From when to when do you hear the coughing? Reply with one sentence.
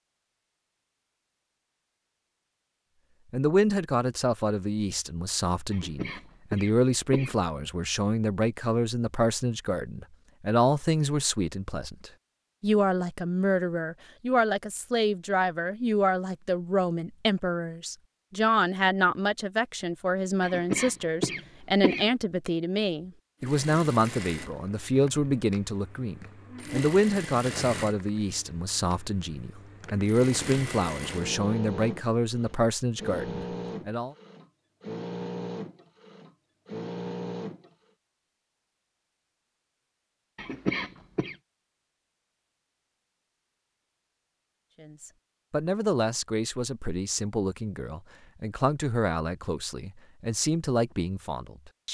You can hear the coughing from 5.7 to 7.3 s, from 20.4 to 22.1 s and from 40.4 to 41.4 s.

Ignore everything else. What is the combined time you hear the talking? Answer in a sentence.
The talking can be heard for 38 seconds in total.